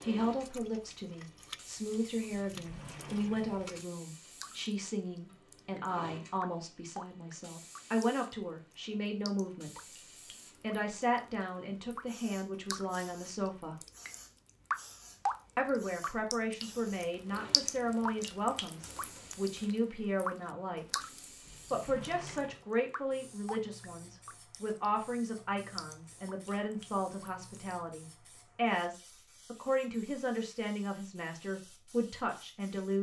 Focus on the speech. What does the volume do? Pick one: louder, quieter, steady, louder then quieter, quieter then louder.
steady.